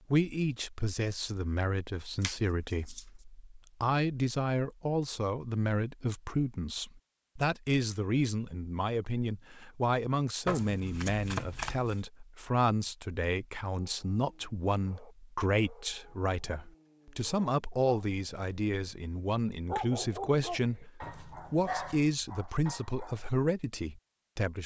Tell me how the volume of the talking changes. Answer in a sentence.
The volume of the talking stays about the same.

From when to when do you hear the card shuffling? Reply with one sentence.
The card shuffling can be heard from 2.2 to 3.0 s, from 10.4 to 12.0 s and from 21.0 to 22.0 s.